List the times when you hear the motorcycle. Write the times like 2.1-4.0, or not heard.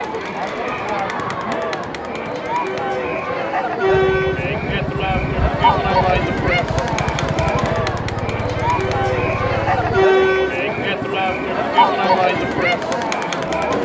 3.9-10.1.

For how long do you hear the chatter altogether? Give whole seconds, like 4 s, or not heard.
14 s.